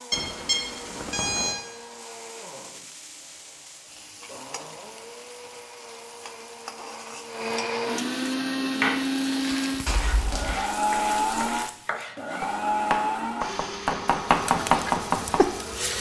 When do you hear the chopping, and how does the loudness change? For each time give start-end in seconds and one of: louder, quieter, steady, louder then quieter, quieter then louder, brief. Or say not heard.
8.8-15.5 louder.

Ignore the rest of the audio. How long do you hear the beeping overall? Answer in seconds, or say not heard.
2 s.